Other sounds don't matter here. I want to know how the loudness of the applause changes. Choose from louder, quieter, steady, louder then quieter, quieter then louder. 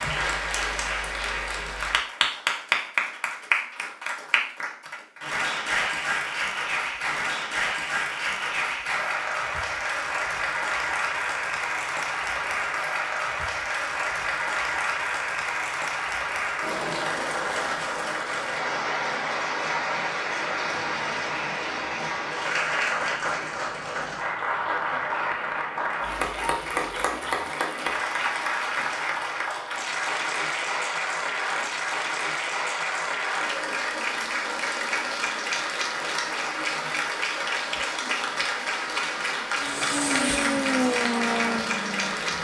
steady.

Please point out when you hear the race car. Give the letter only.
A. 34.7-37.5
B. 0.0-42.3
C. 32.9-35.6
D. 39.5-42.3
D.